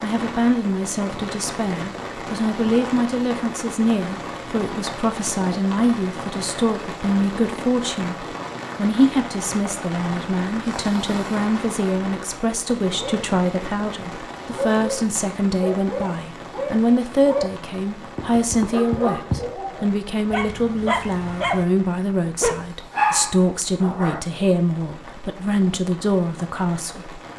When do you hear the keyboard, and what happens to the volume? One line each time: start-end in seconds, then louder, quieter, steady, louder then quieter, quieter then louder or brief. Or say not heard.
not heard.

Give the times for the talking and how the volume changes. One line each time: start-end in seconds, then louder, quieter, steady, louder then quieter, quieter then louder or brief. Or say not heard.
0.0-27.2 steady.